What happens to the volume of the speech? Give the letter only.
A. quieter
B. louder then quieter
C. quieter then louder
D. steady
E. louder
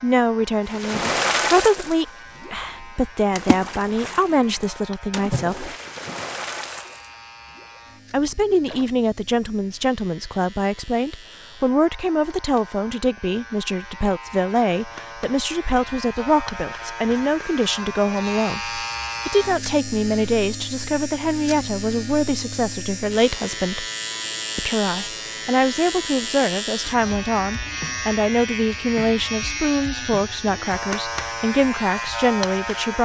D.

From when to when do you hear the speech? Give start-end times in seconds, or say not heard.
0.0-5.8, 8.1-23.9, 24.6-33.0.